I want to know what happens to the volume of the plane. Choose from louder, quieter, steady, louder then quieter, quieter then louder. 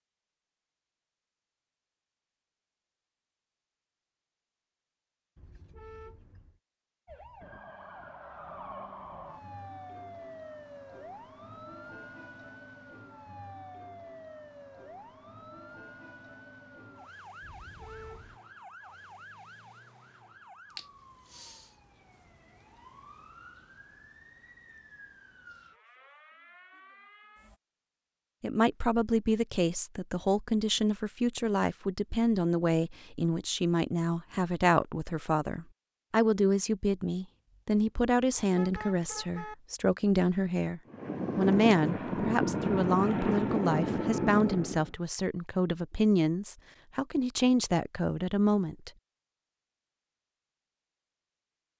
steady.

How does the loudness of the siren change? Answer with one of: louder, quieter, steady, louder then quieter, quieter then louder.
quieter.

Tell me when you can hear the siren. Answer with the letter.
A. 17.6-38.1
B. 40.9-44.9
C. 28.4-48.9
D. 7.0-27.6
D.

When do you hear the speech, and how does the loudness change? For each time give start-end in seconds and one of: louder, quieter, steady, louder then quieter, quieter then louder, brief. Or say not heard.
28.4-48.9 steady.